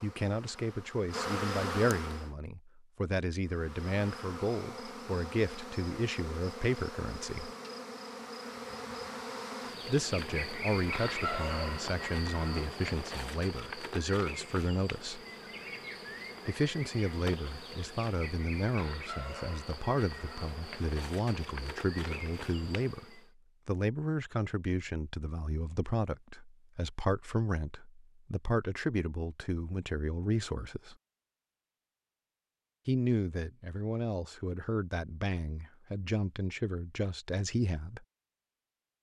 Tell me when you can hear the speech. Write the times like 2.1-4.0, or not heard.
0.0-7.5, 9.8-15.2, 16.4-30.9, 32.9-38.0.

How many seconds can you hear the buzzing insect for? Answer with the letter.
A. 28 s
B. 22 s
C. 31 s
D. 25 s
B.